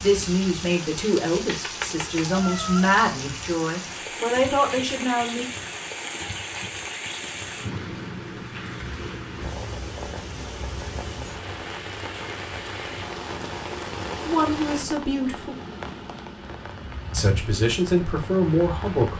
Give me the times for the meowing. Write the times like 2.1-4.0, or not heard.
1.4-2.9.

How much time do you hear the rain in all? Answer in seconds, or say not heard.
19 s.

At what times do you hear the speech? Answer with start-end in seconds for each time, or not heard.
0.0-5.5, 14.2-15.6, 17.1-19.1.